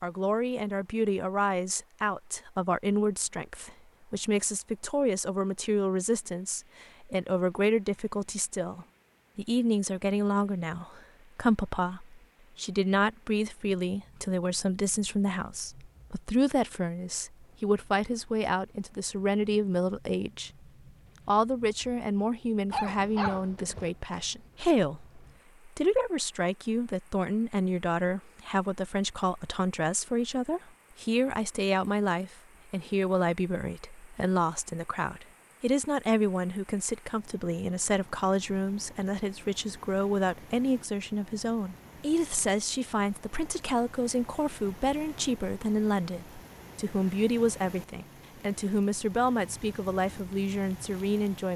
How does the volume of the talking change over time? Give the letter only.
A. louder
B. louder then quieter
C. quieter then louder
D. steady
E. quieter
D.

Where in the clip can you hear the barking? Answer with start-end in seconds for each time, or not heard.
22.7-23.9.